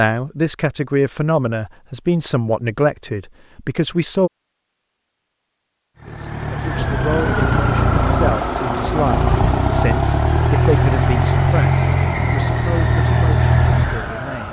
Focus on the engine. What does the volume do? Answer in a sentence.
The loudness of the engine stays about the same.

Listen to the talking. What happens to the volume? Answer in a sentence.
The volume of the talking goes down.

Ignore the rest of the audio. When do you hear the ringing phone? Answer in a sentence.
You can't hear the ringing phone here.